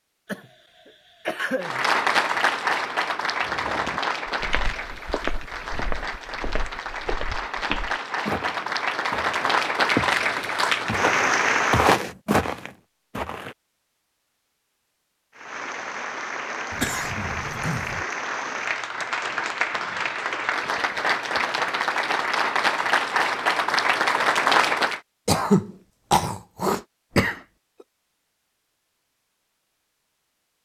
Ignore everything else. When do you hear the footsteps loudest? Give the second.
12 s.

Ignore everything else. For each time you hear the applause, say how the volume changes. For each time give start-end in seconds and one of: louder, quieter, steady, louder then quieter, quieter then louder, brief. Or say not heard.
1.6-11.9 quieter then louder
15.3-25.0 louder.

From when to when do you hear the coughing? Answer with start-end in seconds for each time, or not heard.
0.2-1.9, 16.7-18.1, 25.2-27.4.